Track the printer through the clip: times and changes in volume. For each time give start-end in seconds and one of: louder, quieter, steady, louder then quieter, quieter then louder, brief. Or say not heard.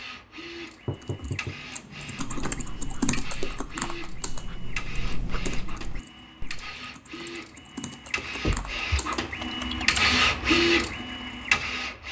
0.0-12.0 louder.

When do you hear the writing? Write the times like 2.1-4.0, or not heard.
2.2-6.8.